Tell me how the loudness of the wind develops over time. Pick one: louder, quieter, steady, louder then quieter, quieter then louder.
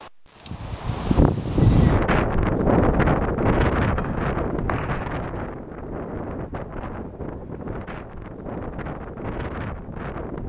quieter.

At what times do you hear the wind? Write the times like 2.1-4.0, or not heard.
0.0-10.4.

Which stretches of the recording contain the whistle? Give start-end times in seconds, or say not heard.
4.0-5.1.